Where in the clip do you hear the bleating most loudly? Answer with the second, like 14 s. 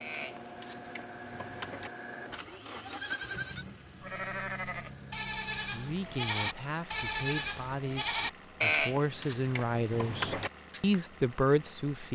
9 s.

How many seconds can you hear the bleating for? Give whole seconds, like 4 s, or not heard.
11 s.